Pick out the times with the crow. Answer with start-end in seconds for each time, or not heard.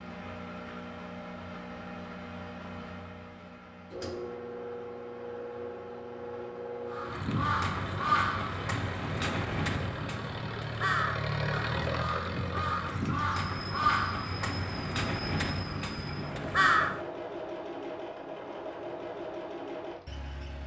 6.9-17.0.